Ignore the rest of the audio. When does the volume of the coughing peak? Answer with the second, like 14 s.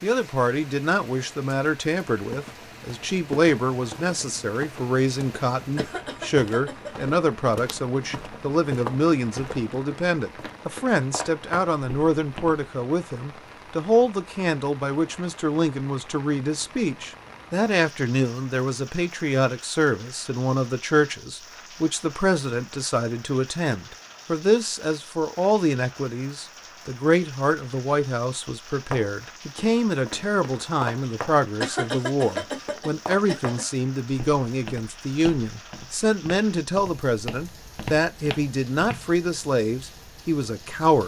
32 s.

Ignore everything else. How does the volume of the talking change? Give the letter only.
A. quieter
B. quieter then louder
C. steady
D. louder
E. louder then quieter
C.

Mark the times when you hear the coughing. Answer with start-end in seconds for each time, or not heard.
5.8-7.5, 31.6-33.6.